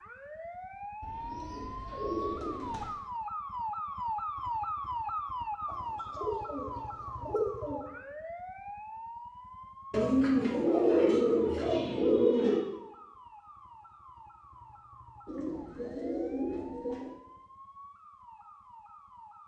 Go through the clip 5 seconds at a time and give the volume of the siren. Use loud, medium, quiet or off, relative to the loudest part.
loud, loud, quiet, quiet.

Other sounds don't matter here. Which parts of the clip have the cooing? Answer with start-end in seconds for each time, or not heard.
1.0-3.0, 5.7-7.8, 9.9-12.7, 15.2-17.1.